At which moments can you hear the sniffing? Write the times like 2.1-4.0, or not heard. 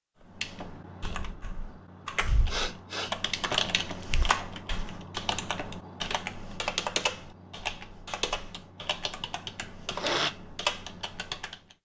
2.5-3.1, 9.6-10.3.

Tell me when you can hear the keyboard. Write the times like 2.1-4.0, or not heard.
0.2-11.7.